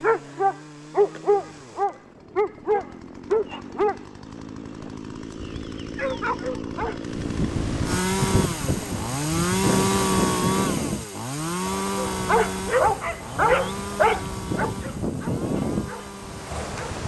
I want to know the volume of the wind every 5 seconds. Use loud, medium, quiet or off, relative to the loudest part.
off, loud, loud, loud.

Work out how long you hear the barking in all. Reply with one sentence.
The barking can be heard for 12 seconds in total.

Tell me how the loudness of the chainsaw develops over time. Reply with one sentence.
The loudness of the chainsaw goes up, then down.